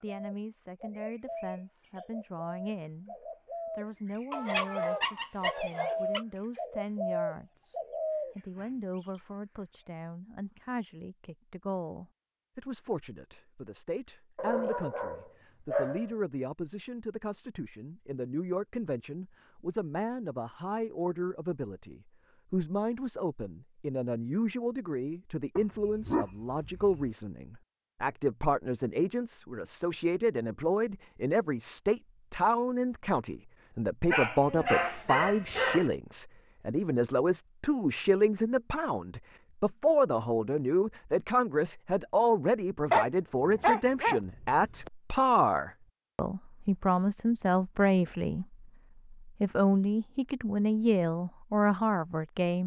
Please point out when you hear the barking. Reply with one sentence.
You can hear the barking from 4.3 to 6.2 s, from 14.3 to 16.1 s, from 25.6 to 27.1 s, from 34.1 to 35.9 s and from 42.9 to 44.9 s.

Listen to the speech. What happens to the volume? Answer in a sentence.
The volume of the speech goes up.